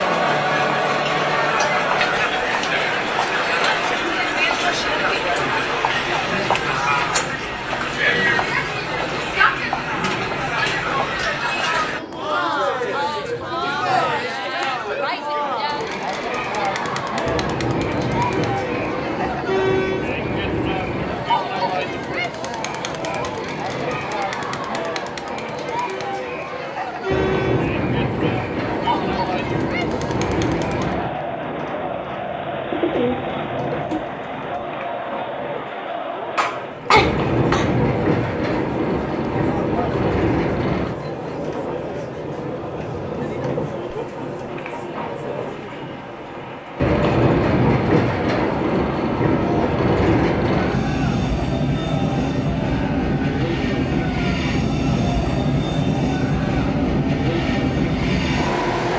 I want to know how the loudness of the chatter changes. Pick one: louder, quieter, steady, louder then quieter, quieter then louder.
quieter.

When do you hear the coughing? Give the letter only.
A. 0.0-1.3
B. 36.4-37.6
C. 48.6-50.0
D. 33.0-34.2
B.